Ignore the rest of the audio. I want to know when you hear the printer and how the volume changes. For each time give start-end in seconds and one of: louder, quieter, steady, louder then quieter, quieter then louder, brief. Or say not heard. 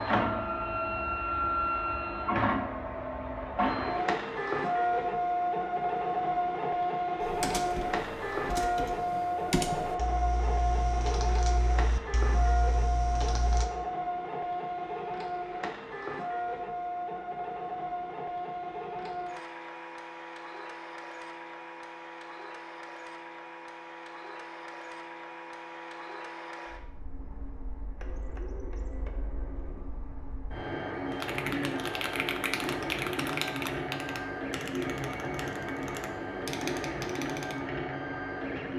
0.0-38.7 quieter then louder.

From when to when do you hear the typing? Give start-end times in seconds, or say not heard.
7.2-13.7, 31.1-37.6.